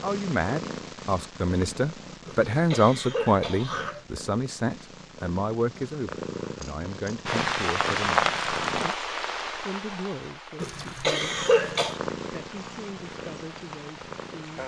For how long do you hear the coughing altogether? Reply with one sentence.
The coughing can be heard for 3 seconds in total.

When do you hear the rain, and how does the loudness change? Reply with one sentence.
You can hear the rain from 7.2 to 14.6 s, getting quieter.